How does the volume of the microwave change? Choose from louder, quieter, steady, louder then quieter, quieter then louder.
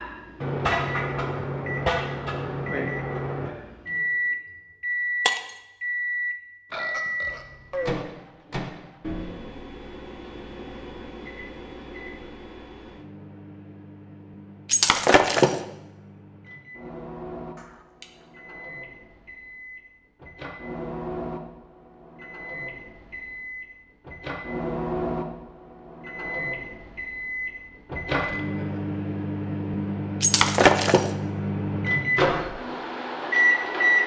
quieter then louder.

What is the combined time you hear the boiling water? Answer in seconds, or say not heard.
not heard.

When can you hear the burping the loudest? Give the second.
8 s.